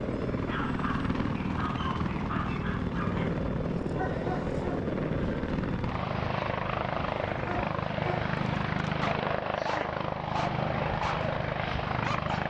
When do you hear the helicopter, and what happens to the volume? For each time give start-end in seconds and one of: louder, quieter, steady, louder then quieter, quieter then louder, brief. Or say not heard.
0.0-12.4 steady.